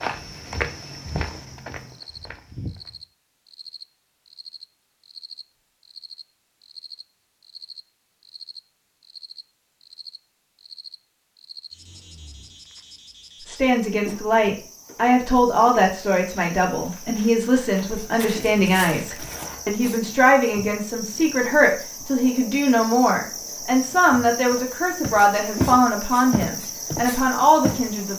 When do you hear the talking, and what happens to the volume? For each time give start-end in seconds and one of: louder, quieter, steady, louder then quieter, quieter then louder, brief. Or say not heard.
13.4-28.1 steady.